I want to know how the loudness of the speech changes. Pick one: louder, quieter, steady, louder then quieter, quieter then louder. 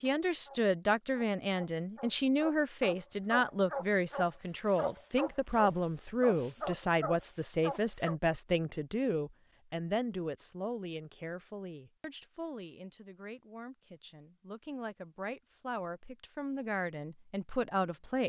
quieter then louder.